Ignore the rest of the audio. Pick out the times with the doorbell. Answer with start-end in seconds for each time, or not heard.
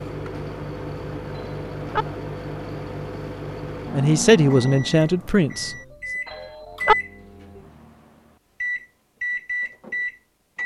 1.4-2.0, 6.2-7.0.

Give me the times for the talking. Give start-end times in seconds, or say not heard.
3.9-5.8.